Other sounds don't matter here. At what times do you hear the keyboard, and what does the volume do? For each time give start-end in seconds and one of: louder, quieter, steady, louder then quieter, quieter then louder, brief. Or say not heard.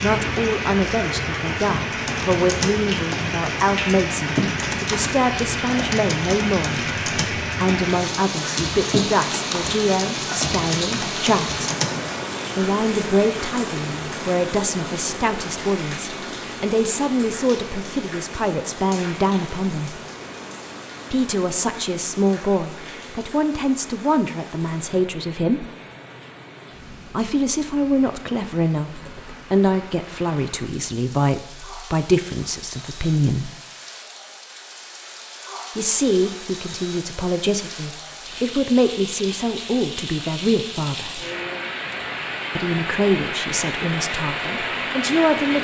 2.0-12.3 steady.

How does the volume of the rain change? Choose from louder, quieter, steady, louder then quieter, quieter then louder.
quieter then louder.